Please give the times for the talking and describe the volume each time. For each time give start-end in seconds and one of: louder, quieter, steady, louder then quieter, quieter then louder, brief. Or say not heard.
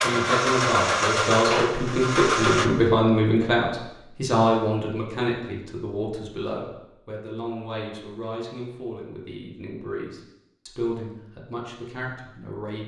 0.0-12.8 quieter.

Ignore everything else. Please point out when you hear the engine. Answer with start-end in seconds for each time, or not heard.
0.0-2.7.